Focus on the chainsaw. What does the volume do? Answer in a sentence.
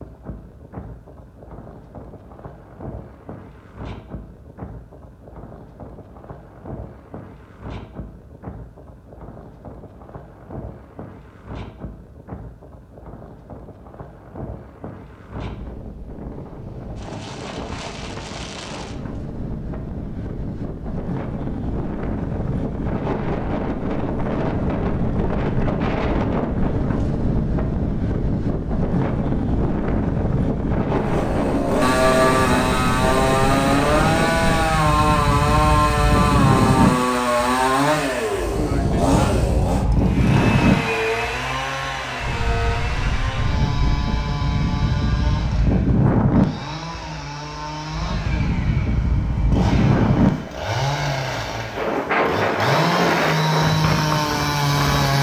The volume of the chainsaw goes down, then up.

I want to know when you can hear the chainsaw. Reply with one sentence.
You can hear the chainsaw from 30.9 to 55.1 s.